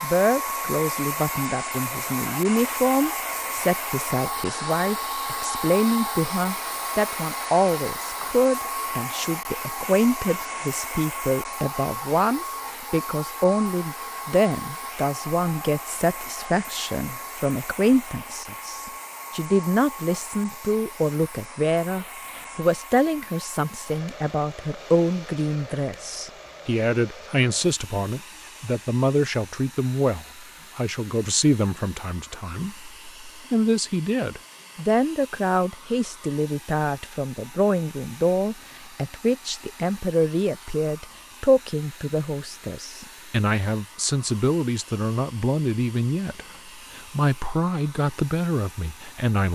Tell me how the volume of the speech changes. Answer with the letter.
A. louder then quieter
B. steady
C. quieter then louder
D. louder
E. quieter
B.